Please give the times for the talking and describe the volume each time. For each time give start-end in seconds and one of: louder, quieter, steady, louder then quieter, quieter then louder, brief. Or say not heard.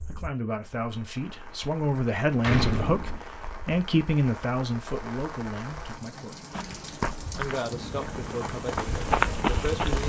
0.1-6.3 louder then quieter
7.3-10.0 brief.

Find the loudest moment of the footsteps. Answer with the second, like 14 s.
9 s.